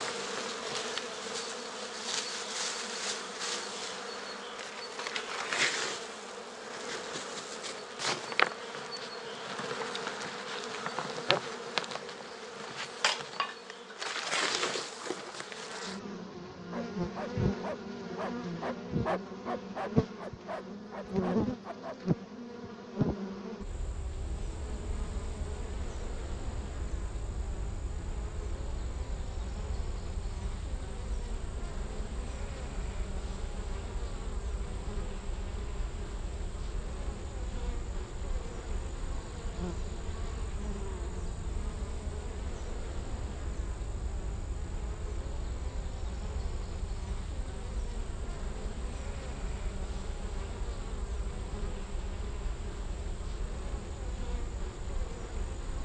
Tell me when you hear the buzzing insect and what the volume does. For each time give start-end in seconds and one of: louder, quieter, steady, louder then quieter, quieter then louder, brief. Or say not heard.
0.0-55.8 quieter.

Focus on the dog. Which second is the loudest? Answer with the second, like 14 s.
19 s.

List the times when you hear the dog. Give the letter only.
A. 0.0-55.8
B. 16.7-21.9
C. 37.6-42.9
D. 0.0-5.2
B.